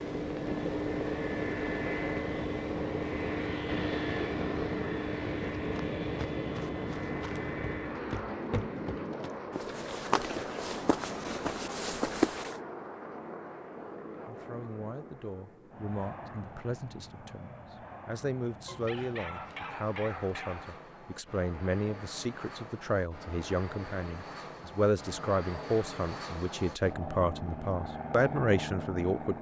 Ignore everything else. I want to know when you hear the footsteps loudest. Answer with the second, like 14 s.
12 s.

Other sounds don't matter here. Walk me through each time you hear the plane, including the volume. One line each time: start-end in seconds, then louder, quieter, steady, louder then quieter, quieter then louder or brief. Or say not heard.
0.0-29.3 quieter then louder.